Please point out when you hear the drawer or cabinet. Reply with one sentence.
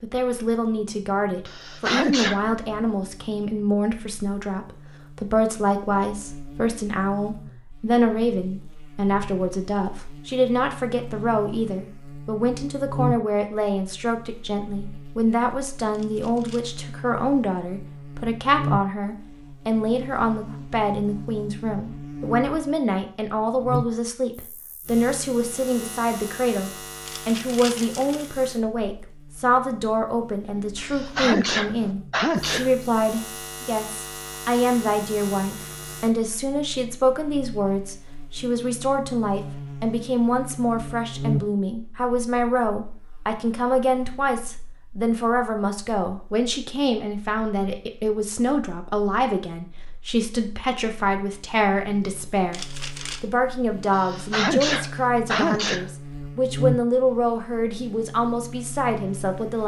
You can't hear the drawer or cabinet here.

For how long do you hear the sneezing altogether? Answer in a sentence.
You can hear the sneezing for 5 seconds altogether.